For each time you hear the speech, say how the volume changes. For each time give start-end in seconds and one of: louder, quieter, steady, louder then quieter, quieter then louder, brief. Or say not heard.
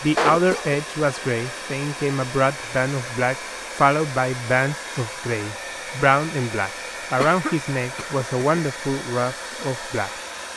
0.0-10.1 steady.